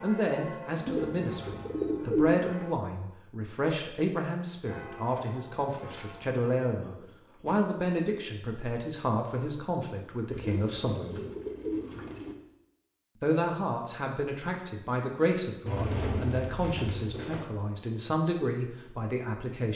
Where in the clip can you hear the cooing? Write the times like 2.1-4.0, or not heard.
0.8-2.4, 5.8-7.6, 10.3-12.3, 15.7-17.4.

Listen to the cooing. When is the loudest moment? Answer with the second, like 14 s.
2 s.